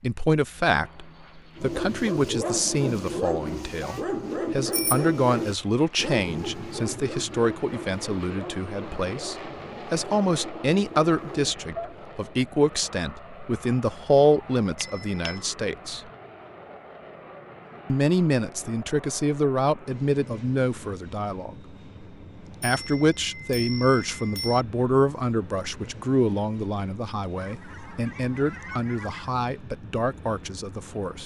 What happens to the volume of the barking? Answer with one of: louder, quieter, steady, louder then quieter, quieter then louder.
quieter.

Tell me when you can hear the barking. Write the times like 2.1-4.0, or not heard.
1.6-12.0.